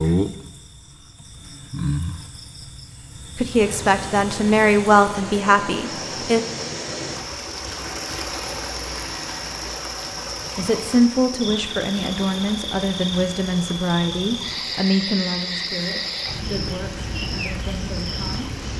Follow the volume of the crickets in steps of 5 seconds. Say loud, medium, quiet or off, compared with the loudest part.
loud, medium, loud, loud.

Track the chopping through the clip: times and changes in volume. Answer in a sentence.
The chopping can't be heard in this clip.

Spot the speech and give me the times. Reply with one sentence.
You can hear the speech from 3.4 to 6.4 s and from 10.6 to 18.5 s.